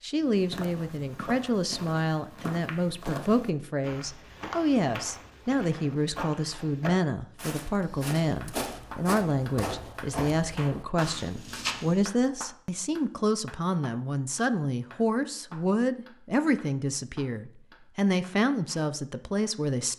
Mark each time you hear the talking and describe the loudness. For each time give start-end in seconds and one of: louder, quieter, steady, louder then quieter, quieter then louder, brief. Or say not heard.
0.0-19.9 steady.